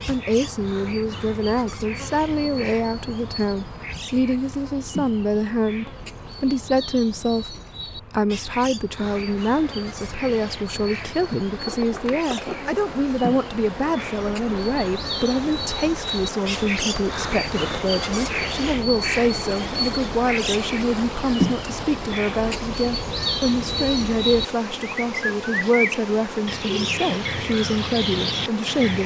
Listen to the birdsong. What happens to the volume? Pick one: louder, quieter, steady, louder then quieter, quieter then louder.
louder.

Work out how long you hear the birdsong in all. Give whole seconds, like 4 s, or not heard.
29 s.